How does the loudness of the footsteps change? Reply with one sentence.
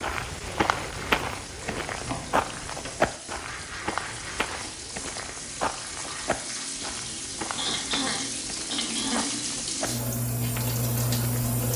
The loudness of the footsteps goes down.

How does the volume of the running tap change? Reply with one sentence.
The loudness of the running tap goes up.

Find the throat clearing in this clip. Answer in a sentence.
You can hear the throat clearing from 0.4 to 1.9 s and from 7.5 to 9.3 s.